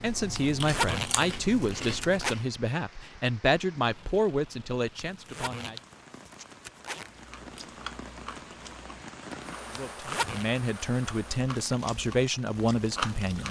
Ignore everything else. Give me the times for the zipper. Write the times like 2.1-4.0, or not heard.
0.3-2.4, 5.0-7.1, 9.8-10.4.